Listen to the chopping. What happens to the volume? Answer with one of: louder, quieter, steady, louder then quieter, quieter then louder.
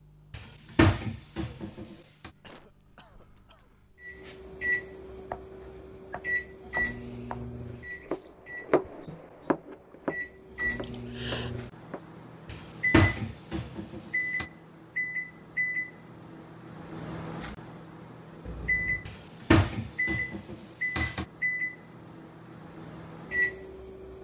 louder then quieter.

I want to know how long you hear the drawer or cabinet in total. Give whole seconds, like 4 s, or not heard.
6 s.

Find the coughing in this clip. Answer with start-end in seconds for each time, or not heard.
2.4-3.8, 10.8-11.6, 18.4-19.1.